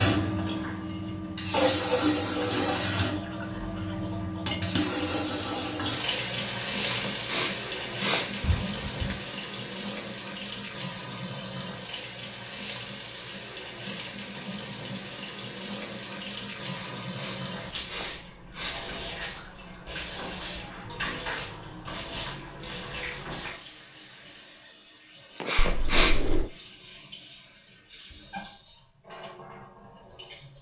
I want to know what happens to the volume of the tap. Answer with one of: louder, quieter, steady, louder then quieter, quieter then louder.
quieter.